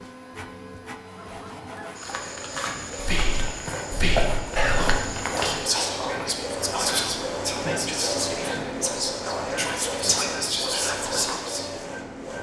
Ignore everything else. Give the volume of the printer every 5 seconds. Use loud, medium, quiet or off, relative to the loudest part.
medium, loud, loud.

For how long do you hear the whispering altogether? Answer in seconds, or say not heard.
9 s.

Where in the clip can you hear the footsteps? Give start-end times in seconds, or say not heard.
1.9-5.7.